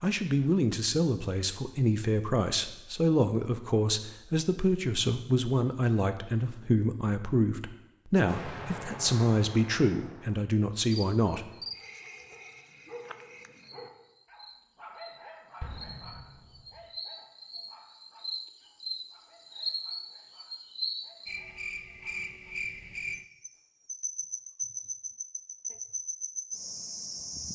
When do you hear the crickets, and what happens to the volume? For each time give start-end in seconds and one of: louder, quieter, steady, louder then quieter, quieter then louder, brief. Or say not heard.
10.9-27.5 louder.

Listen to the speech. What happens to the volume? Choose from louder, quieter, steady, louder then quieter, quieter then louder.
steady.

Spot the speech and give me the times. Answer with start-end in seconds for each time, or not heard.
0.0-11.5.